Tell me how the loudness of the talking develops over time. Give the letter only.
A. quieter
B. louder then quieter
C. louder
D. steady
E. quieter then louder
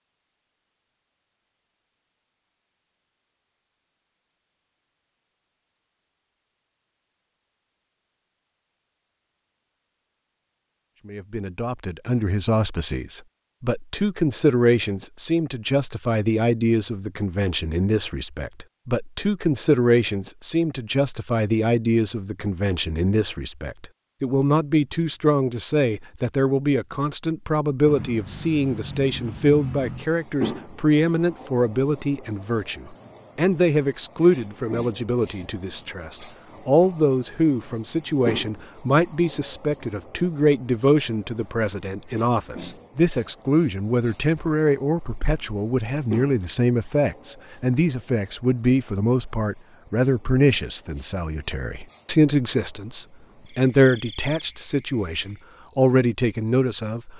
D.